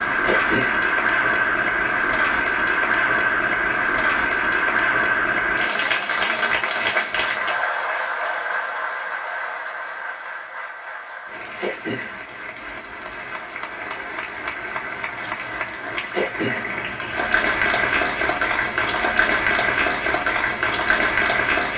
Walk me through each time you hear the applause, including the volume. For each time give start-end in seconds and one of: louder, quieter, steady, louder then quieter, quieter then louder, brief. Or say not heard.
0.0-21.7 quieter then louder.